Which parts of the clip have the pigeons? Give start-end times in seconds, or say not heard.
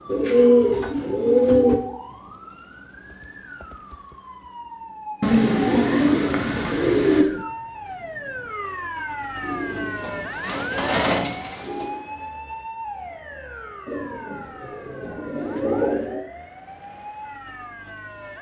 0.1-1.8, 5.2-7.2, 9.4-11.9, 13.8-16.2.